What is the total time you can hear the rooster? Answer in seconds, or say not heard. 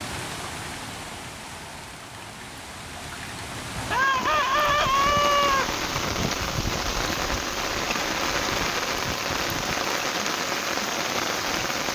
2 s.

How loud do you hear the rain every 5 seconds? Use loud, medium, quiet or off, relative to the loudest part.
medium, loud, loud.